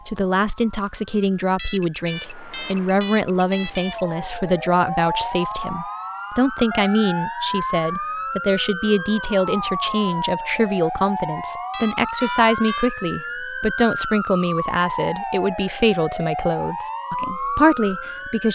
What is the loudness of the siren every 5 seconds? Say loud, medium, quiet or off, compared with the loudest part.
medium, loud, loud, loud.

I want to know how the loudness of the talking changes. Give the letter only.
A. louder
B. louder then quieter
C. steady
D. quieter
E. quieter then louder
C.